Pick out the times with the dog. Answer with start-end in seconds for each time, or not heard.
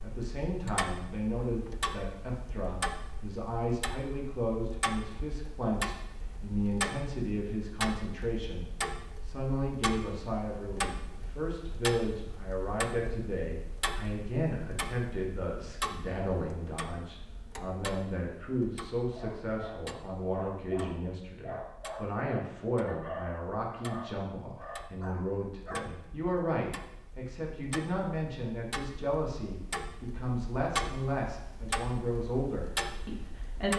19.1-26.3.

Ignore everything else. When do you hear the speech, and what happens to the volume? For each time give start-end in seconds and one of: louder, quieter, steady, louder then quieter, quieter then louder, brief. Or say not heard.
0.0-33.7 steady.